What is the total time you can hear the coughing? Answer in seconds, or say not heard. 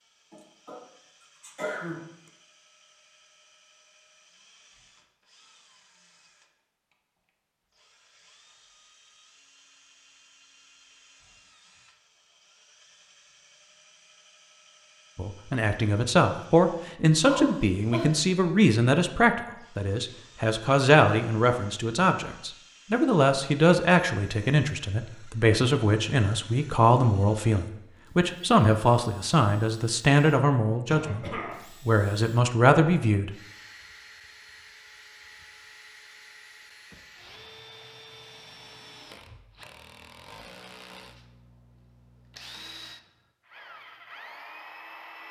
3 s.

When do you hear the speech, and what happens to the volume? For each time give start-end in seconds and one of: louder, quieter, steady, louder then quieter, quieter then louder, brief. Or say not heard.
15.2-33.4 steady.